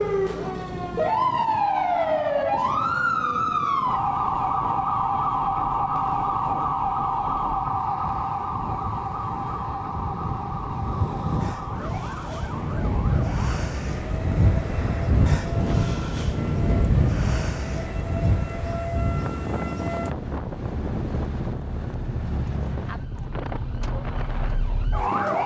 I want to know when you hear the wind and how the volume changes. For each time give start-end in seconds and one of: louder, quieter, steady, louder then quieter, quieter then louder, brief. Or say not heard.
0.0-25.4 louder then quieter.